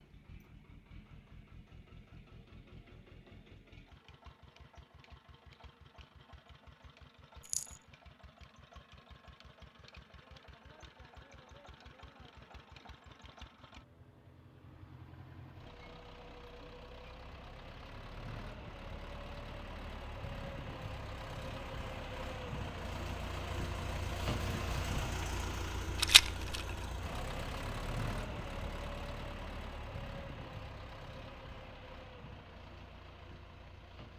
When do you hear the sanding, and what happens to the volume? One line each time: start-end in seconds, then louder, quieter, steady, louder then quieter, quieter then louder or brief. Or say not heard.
not heard.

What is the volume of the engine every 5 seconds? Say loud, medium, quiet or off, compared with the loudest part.
quiet, quiet, quiet, medium, loud, loud, medium.